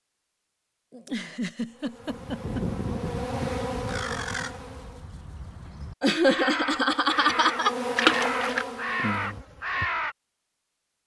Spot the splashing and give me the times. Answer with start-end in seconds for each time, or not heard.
8.0-8.7.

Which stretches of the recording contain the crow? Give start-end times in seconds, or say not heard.
3.7-10.2.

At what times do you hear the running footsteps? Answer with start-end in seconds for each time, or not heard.
not heard.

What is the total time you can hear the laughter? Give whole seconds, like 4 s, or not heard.
4 s.